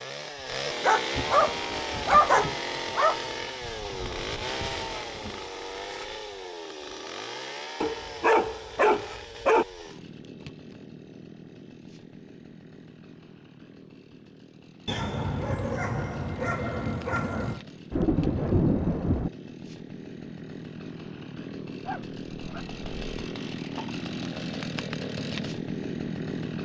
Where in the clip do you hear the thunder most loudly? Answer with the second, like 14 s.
19 s.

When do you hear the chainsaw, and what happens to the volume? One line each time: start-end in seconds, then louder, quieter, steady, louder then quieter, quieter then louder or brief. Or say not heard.
0.0-26.6 quieter then louder.